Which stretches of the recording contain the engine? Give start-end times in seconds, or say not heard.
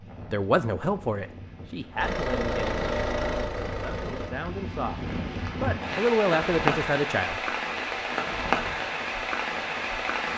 1.9-4.3.